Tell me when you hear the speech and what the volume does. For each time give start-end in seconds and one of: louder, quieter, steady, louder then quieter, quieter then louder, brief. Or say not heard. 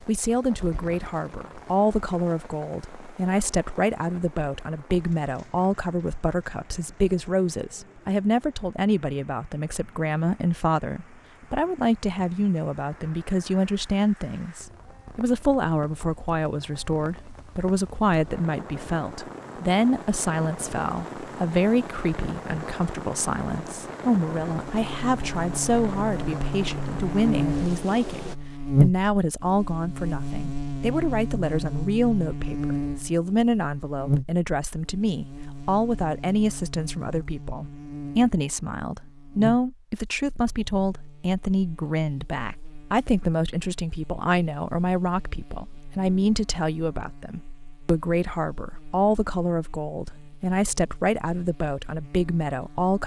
0.1-53.0 steady.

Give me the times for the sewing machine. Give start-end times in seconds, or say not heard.
not heard.